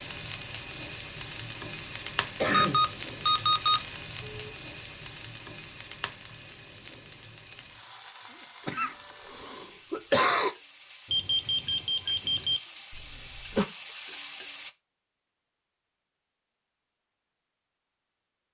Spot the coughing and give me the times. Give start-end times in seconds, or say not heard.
2.4-2.9, 8.7-10.6, 12.9-13.7.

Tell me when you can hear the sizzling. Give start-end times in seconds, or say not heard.
0.0-14.8.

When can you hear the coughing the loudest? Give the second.
10 s.